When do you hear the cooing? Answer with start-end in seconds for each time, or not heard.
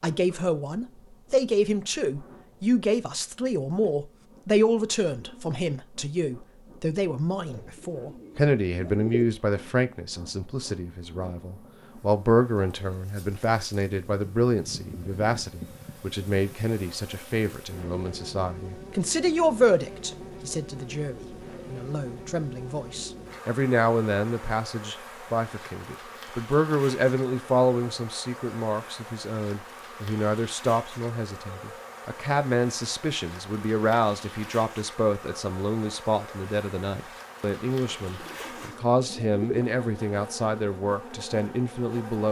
7.5-9.2, 38.0-39.6.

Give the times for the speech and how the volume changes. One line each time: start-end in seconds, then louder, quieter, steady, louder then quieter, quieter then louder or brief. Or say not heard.
0.0-42.2 steady.